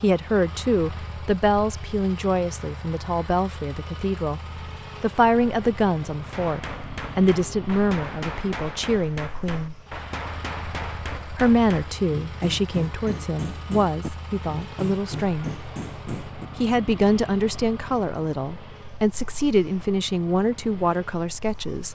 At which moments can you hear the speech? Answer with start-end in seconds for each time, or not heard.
0.0-4.4, 5.0-9.8, 11.3-21.9.